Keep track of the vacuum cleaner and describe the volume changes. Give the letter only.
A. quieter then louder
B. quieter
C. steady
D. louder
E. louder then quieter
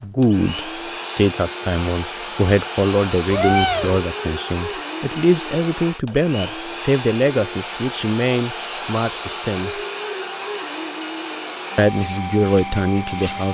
C.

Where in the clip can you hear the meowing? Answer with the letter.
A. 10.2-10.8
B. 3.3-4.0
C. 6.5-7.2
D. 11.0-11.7
B.